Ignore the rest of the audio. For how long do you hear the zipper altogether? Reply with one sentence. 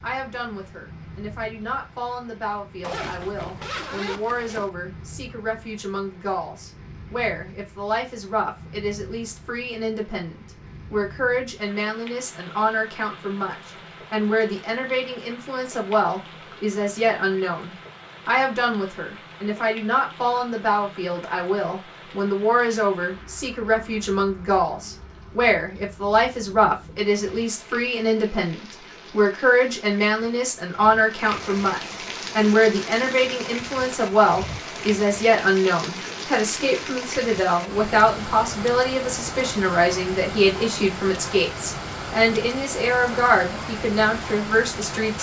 You can hear the zipper for 2 seconds altogether.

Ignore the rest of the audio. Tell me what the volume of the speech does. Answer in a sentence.
The loudness of the speech goes up.